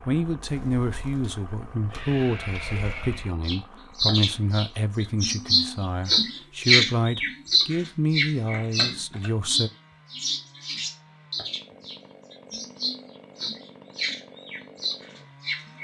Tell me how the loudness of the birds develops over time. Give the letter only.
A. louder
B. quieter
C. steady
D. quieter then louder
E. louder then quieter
E.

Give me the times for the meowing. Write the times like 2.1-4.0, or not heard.
not heard.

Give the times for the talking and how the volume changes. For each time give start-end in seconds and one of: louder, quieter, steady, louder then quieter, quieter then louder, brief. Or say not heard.
0.1-9.7 steady.